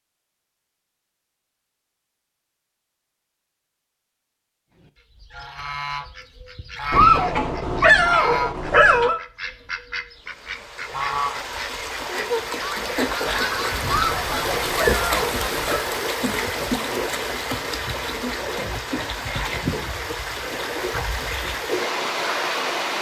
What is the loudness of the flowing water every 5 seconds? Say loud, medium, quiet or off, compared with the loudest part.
off, off, loud, loud, loud.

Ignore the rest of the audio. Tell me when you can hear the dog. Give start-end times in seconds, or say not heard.
6.9-9.2, 13.8-15.8.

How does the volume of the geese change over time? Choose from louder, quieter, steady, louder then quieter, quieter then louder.
steady.